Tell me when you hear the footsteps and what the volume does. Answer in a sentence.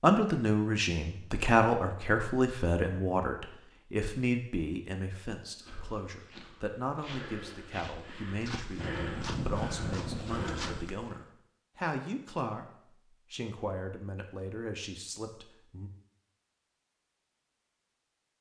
You can hear the footsteps from 5.5 to 11.2 s, getting louder.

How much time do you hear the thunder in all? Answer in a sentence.
You can hear the thunder for 2 seconds altogether.